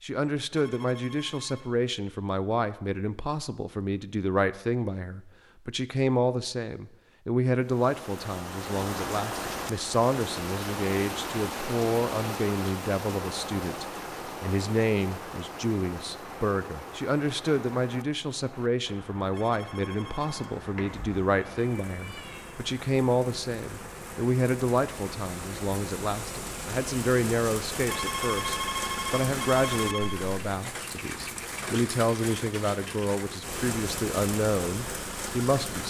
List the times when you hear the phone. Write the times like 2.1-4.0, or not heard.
0.5-1.7, 19.3-20.5, 27.9-30.1.